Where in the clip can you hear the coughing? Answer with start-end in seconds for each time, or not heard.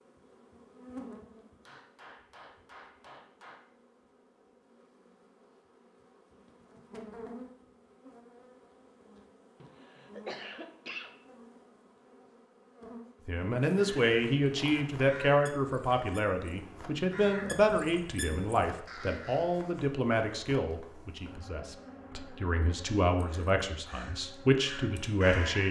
9.6-11.2.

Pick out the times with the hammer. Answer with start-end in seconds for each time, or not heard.
1.6-3.6.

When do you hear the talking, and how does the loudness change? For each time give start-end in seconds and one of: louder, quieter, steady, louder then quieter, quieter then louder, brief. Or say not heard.
13.2-25.6 quieter then louder.